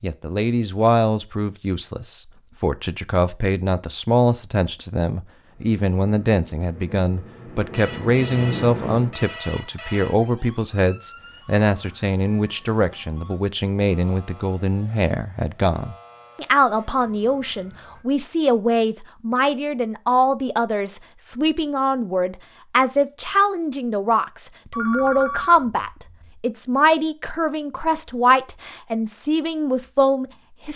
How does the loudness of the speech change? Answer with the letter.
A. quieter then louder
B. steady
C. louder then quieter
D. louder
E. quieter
B.